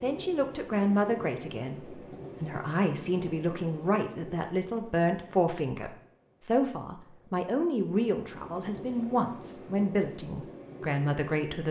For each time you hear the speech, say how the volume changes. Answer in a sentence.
You can hear the speech from 0.0 to 11.6 s, at a steady volume.